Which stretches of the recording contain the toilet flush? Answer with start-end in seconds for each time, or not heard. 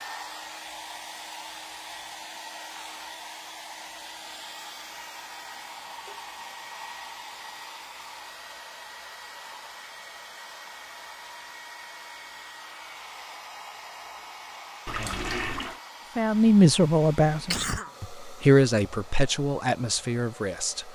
14.8-15.8.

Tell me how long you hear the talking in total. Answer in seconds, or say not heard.
5 s.